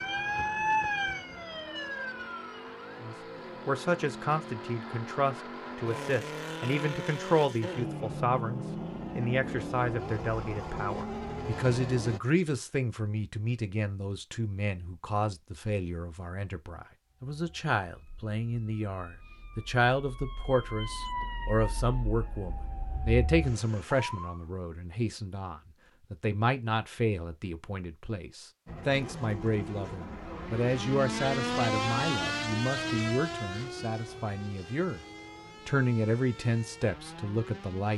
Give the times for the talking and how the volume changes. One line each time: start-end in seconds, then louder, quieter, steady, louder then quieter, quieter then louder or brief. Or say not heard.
3.0-35.0 steady
35.6-37.9 brief.